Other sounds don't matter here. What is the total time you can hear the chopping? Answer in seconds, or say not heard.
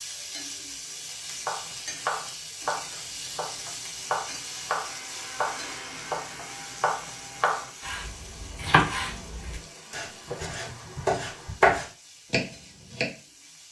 12 s.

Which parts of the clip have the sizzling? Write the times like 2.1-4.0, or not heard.
0.0-13.6.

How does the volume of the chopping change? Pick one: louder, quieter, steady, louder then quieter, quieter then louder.
louder.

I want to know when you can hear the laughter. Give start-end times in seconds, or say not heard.
10.2-11.6.